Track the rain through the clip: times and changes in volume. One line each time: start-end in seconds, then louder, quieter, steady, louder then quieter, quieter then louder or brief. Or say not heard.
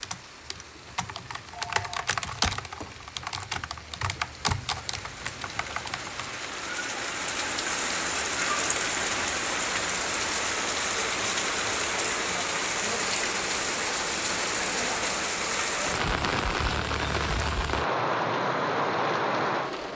0.0-19.9 louder.